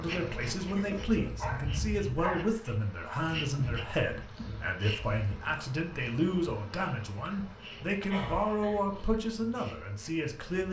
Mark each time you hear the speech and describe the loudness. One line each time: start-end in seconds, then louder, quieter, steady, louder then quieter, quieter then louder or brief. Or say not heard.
0.0-10.6 steady.